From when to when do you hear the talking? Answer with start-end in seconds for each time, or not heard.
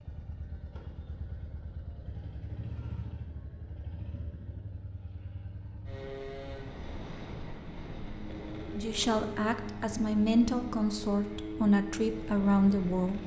8.7-13.2.